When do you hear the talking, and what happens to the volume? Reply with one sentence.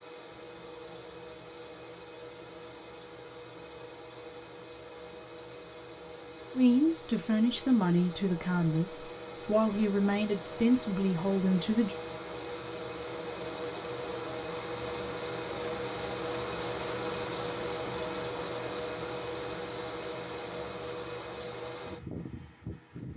The talking can be heard from 6.5 to 11.9 s, at a steady volume.